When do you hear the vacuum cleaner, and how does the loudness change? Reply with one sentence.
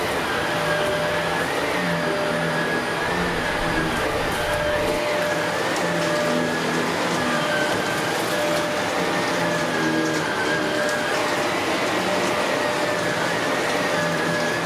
You can hear the vacuum cleaner from 0.0 to 14.6 s, at a steady volume.